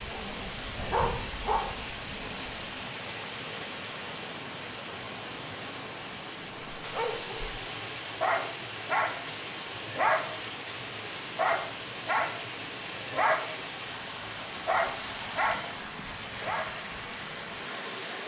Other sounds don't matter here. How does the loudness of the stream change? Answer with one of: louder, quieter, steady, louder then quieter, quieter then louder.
steady.